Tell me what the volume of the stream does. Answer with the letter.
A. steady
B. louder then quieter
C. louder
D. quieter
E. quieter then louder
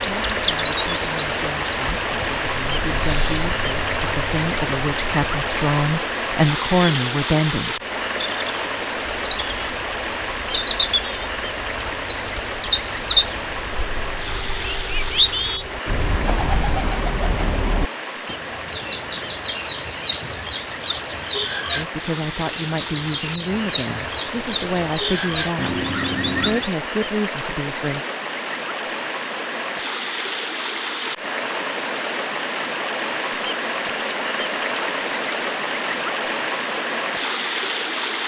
E.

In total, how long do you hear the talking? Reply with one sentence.
The talking can be heard for 14 seconds in total.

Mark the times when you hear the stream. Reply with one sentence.
You can hear the stream from 0.0 to 38.2 s.